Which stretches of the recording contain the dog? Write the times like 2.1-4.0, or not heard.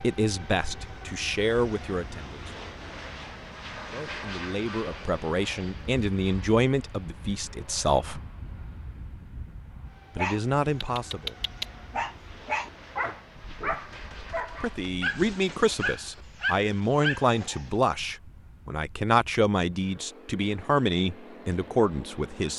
10.2-17.7.